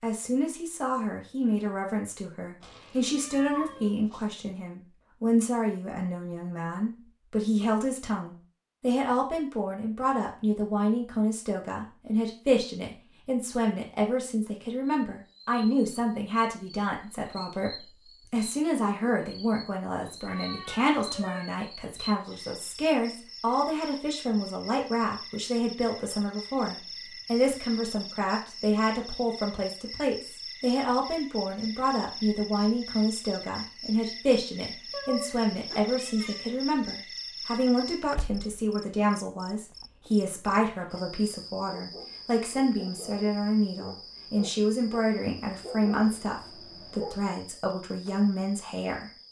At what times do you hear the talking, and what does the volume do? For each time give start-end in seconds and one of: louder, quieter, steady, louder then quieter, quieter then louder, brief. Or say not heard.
0.0-49.1 steady.